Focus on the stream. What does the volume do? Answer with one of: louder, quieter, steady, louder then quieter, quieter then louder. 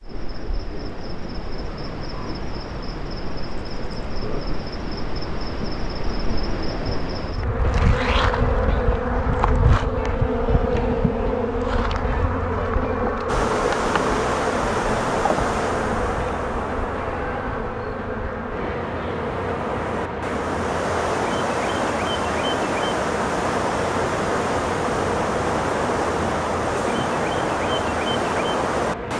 quieter then louder.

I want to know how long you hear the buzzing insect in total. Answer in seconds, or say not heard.
29 s.